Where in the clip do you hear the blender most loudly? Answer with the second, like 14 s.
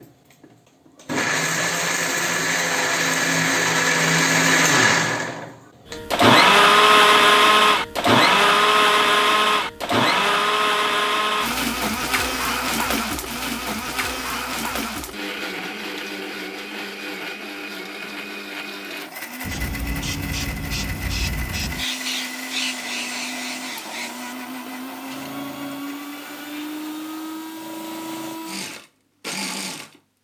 7 s.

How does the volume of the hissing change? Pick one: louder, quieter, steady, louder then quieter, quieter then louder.
quieter.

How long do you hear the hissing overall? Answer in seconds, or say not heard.
9 s.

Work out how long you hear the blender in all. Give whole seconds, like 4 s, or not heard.
30 s.